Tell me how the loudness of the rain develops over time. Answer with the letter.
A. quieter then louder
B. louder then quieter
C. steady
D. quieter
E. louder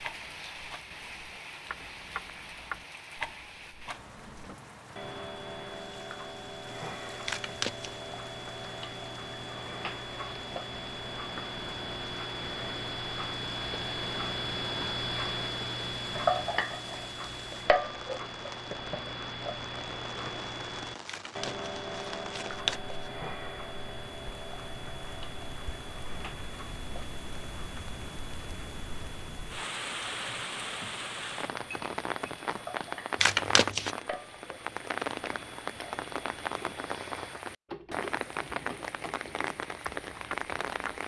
A.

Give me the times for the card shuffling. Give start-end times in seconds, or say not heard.
7.2-8.0, 21.1-23.1, 33.2-33.9.